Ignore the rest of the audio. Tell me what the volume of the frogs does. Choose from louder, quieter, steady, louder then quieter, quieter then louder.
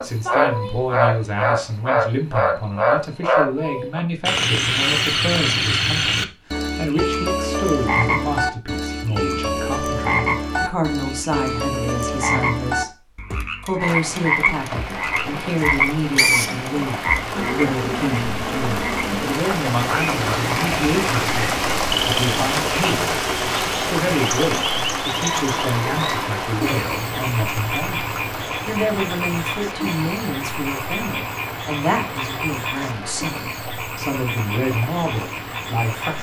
quieter.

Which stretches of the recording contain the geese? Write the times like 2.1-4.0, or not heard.
not heard.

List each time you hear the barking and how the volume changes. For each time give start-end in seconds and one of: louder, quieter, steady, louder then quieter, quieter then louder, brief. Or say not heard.
not heard.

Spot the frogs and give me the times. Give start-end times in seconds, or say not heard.
0.0-36.1.